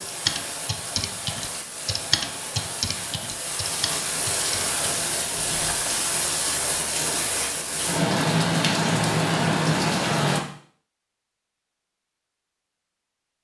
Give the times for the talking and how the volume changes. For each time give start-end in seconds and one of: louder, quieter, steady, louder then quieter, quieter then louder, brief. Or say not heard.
not heard.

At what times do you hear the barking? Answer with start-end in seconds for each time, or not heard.
not heard.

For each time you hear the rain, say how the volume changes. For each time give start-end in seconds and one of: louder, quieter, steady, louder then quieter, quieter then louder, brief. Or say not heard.
0.0-10.4 louder.